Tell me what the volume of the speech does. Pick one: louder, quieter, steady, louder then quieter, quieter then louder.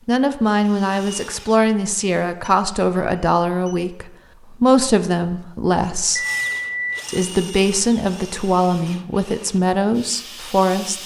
steady.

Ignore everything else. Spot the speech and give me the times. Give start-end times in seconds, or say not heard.
0.1-6.2, 7.0-11.0.